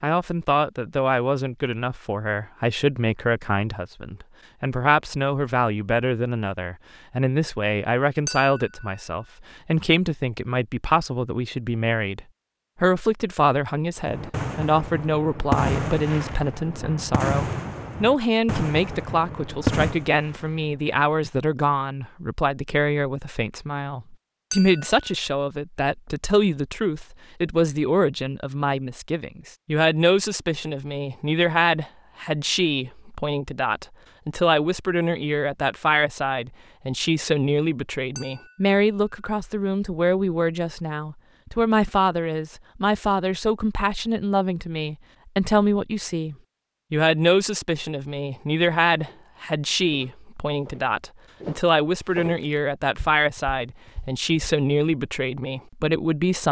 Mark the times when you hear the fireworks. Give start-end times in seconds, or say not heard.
14.0-20.9.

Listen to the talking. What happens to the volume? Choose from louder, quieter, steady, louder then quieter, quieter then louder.
steady.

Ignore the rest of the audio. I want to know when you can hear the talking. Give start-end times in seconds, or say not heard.
0.0-56.4.